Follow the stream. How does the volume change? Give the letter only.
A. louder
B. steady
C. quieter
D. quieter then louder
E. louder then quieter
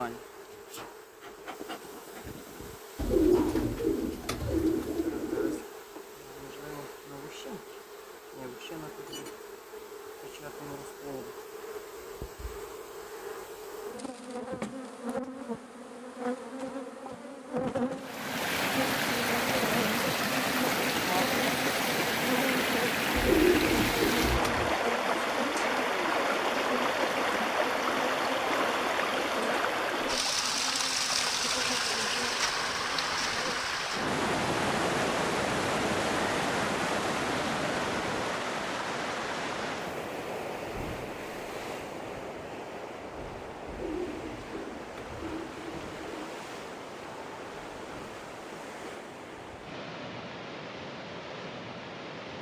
C.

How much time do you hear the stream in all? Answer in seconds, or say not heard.
34 s.